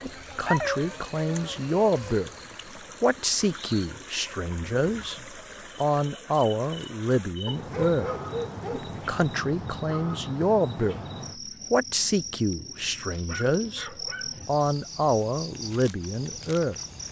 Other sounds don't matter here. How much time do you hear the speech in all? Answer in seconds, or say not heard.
14 s.